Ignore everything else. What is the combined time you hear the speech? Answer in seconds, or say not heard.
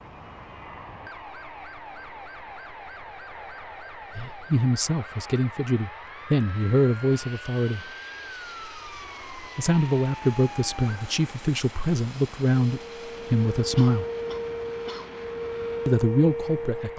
9 s.